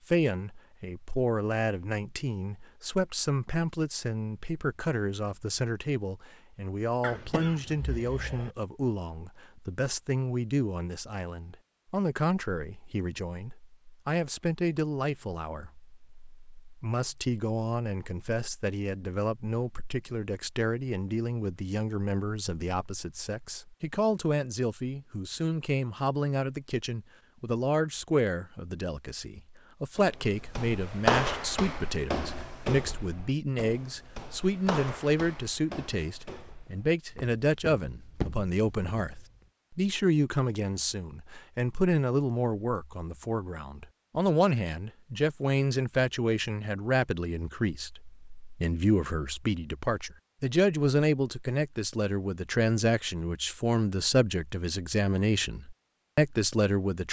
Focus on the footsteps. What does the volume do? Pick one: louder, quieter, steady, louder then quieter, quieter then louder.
quieter then louder.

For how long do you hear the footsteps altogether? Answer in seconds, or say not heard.
9 s.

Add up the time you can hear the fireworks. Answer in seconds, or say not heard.
not heard.